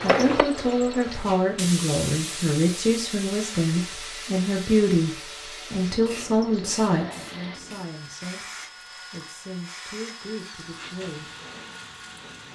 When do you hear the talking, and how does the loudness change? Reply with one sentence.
The talking can be heard from 0.0 to 11.3 s, getting quieter.